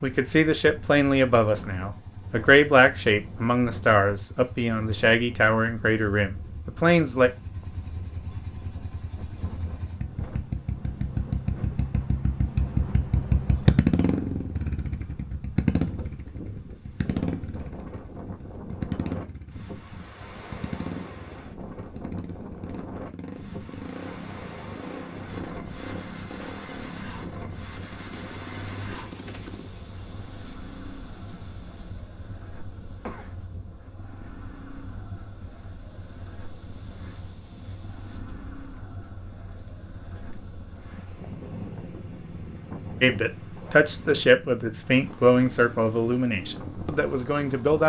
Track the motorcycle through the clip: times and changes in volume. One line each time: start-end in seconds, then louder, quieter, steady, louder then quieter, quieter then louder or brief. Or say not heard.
0.0-47.8 louder then quieter.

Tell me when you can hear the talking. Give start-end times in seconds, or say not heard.
0.0-7.3, 43.0-47.8.